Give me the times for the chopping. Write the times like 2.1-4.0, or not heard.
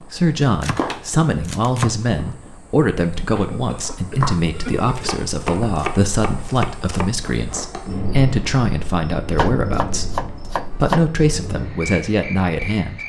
0.6-2.1, 4.8-7.2, 9.3-11.1.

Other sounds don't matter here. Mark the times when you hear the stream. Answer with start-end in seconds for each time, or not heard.
not heard.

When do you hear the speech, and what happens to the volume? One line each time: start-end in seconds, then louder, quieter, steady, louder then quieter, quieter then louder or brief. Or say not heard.
0.1-13.0 steady.